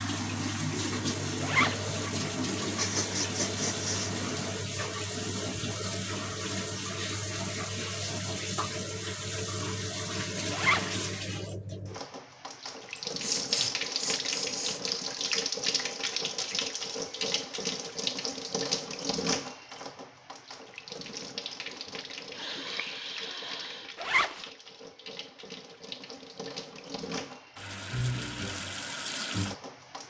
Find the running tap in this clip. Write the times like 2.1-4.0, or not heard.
0.0-30.0.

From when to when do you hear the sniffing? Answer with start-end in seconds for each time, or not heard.
2.8-4.2, 13.1-14.8, 21.7-24.1.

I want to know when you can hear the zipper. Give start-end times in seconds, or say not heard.
1.4-1.9, 10.5-11.0, 23.9-24.4.